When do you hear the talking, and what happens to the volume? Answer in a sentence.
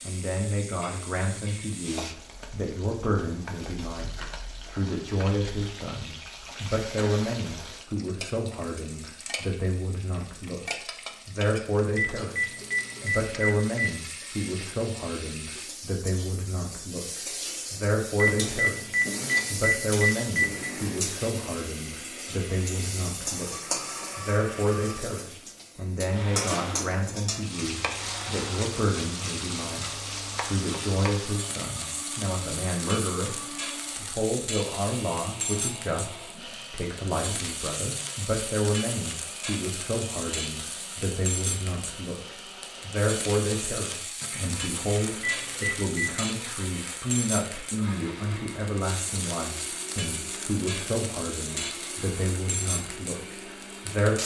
The talking can be heard from 0.0 to 54.2 s, at a steady volume.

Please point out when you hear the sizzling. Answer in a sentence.
You can hear the sizzling from 0.0 to 54.2 s.